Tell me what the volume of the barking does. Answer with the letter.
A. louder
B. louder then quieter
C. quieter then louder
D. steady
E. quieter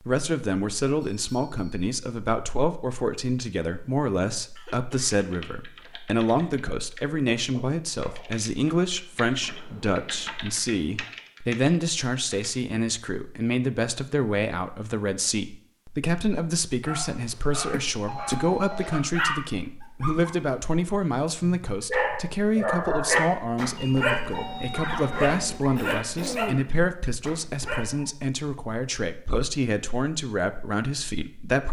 B.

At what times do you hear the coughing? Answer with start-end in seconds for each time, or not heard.
4.5-5.8, 17.7-18.6, 25.8-26.7.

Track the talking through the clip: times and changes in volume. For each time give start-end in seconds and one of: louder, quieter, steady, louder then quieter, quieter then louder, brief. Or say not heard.
0.0-31.6 steady.